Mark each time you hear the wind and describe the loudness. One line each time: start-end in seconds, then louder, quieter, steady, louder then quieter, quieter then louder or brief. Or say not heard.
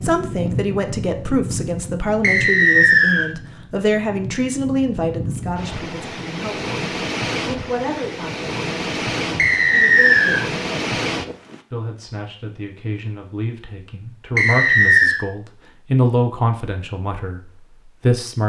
0.0-11.6 quieter then louder.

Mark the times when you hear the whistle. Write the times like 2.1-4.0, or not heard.
2.2-3.2, 9.3-10.4, 14.3-15.2.